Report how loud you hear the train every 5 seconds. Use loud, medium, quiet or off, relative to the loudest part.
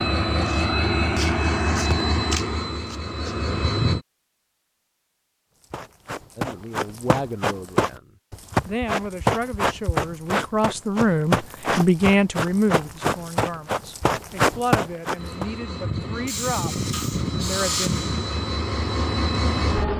loud, off, off, loud.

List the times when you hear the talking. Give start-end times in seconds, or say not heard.
6.3-17.9.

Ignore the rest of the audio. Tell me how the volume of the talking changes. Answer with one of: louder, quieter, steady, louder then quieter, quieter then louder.
louder then quieter.